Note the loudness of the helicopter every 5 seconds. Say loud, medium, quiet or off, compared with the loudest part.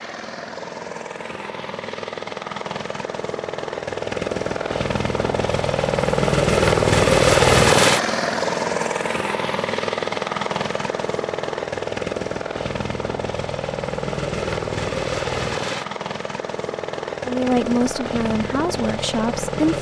medium, loud, medium, medium.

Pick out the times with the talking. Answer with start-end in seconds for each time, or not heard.
17.2-19.7.